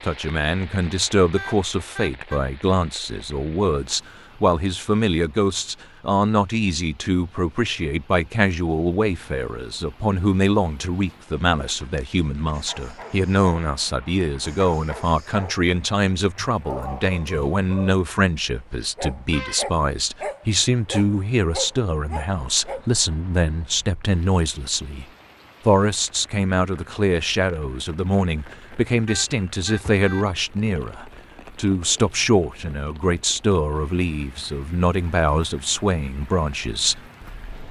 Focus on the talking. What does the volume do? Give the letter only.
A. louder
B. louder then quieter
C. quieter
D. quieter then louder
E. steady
E.